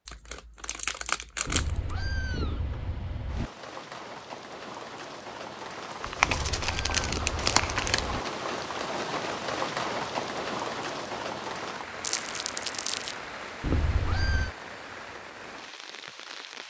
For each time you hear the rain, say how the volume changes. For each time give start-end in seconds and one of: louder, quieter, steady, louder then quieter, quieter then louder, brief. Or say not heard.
3.2-16.6 louder then quieter.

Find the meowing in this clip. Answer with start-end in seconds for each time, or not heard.
1.4-3.5, 6.2-8.2, 13.6-14.5.